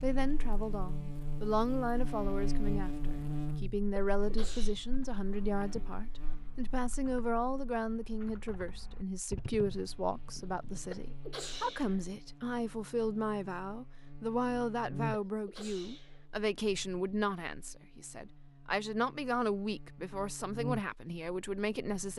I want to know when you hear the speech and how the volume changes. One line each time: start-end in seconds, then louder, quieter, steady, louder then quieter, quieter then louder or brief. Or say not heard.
0.0-22.1 steady.